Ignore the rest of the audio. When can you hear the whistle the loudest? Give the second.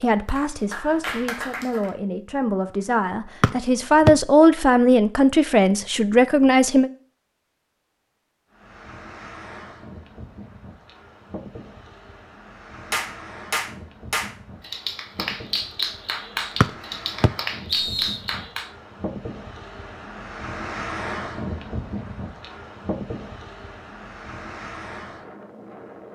4 s.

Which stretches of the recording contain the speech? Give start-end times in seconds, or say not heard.
0.0-6.9.